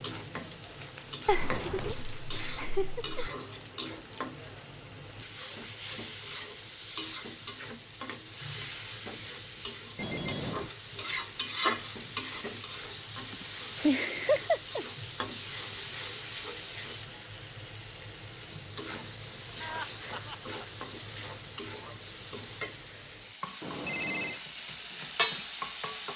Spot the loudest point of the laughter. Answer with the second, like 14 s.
14 s.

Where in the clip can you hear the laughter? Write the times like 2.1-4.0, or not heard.
1.2-3.2, 13.3-14.8, 19.6-20.7.